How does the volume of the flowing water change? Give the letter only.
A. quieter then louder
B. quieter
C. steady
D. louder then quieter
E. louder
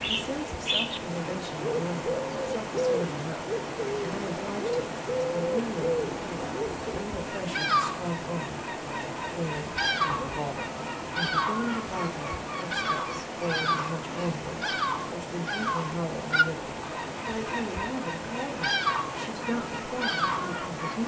C.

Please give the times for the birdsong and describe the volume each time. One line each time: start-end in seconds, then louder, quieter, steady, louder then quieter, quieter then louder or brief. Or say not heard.
0.0-21.0 steady.